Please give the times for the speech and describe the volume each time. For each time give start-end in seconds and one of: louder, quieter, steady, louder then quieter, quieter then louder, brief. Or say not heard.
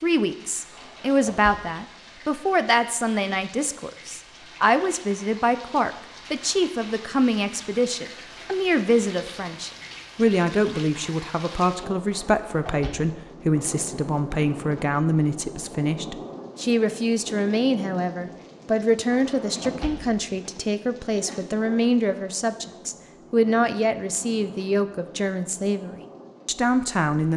0.0-27.3 steady.